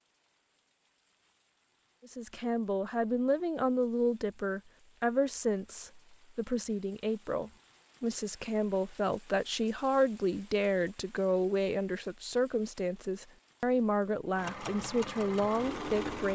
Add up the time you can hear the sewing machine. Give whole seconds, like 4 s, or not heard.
2 s.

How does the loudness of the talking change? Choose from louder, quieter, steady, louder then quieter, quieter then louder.
steady.